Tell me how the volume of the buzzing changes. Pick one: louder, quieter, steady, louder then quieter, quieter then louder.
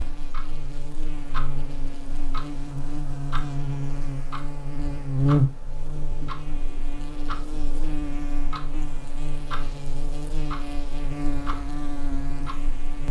louder then quieter.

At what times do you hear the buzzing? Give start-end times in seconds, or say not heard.
0.0-13.0.